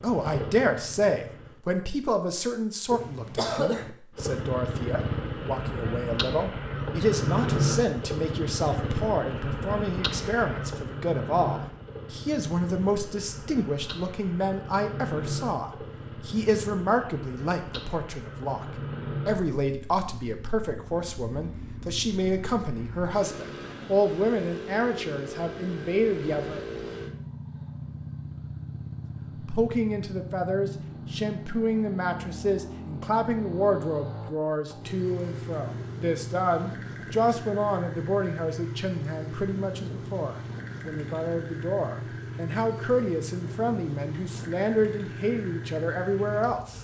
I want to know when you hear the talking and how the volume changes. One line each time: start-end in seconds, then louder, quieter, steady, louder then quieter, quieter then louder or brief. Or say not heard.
0.0-26.6 steady
29.4-46.7 steady.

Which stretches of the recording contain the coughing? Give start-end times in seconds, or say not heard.
2.9-3.9.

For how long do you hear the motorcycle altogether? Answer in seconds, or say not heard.
44 s.